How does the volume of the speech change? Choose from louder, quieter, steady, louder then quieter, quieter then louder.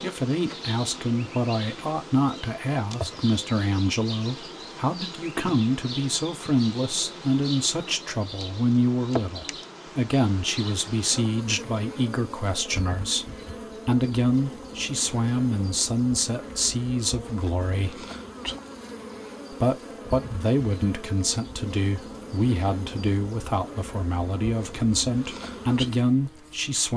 steady.